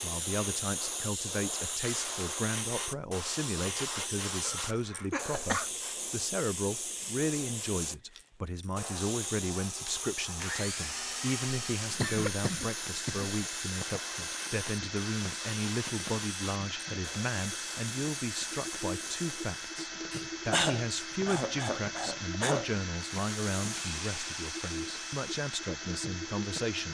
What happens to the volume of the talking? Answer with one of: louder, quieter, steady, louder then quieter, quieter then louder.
steady.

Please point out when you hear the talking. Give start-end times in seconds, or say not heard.
0.0-26.8.